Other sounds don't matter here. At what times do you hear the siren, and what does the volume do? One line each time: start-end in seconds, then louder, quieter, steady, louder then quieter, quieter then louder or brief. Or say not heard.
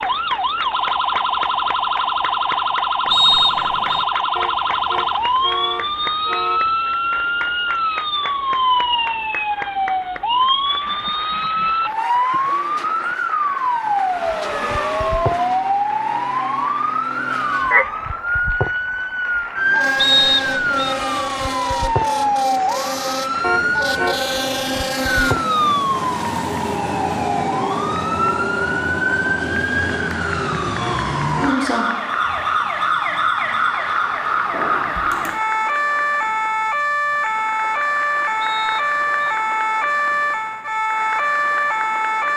0.0-42.3 steady.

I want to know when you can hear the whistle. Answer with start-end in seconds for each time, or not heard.
3.1-4.0, 19.9-20.9, 38.4-39.4.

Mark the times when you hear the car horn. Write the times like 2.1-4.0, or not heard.
4.3-6.8, 23.4-24.3, 30.8-31.7.